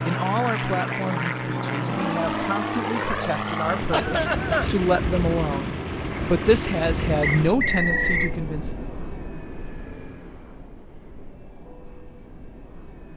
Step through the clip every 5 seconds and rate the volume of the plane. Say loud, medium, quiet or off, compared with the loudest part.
loud, loud, quiet.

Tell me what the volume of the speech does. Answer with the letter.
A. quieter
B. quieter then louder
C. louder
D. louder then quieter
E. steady
C.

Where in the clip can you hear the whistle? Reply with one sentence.
You can hear the whistle from 7.2 to 8.3 s.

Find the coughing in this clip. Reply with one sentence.
The coughing can be heard from 3.9 to 4.7 s.